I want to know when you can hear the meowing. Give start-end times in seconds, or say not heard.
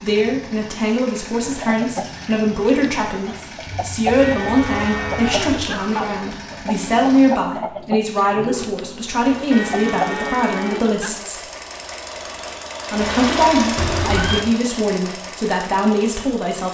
3.6-5.7, 13.8-14.4.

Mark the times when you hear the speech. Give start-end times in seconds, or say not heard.
0.0-11.4, 12.9-16.6.